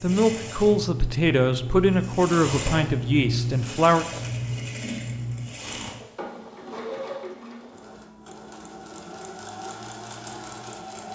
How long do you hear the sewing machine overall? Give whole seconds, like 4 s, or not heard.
11 s.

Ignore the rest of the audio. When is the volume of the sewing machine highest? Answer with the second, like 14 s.
3 s.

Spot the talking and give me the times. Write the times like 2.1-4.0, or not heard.
0.0-4.0.